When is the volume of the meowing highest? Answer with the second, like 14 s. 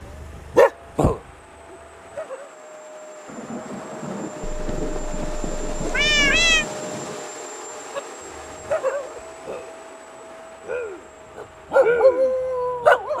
6 s.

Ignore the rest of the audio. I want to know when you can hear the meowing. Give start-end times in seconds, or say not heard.
4.5-6.7.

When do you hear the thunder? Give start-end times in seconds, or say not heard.
3.2-7.2.